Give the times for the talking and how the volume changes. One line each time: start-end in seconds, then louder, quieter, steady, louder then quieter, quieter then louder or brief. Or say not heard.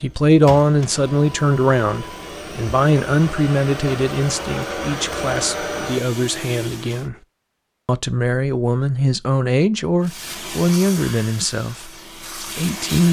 0.0-7.2 quieter
7.8-13.0 quieter.